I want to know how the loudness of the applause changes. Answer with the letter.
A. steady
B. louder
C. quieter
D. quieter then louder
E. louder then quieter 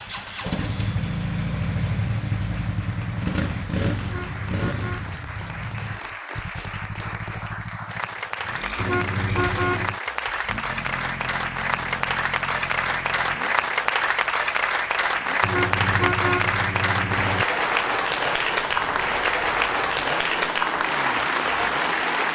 B.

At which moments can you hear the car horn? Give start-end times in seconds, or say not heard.
4.0-5.1, 8.8-10.0, 15.4-17.4.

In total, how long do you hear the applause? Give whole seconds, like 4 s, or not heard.
22 s.